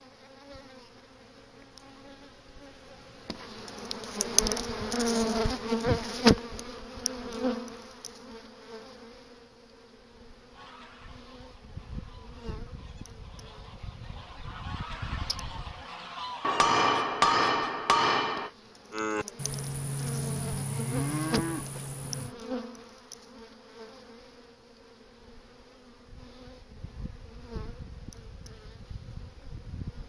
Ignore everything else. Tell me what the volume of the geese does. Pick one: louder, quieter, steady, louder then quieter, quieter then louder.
louder.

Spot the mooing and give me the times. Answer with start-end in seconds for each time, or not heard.
18.9-22.4.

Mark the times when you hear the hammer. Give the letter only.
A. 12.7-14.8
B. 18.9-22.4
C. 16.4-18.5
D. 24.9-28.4
C.